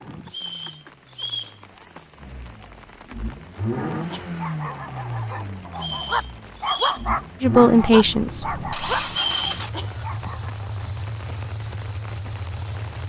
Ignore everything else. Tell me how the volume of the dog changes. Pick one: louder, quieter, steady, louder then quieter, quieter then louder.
louder then quieter.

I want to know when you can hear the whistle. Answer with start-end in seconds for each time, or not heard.
0.2-1.6, 5.8-7.0, 9.1-9.6.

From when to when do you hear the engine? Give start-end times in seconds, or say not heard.
0.0-13.0.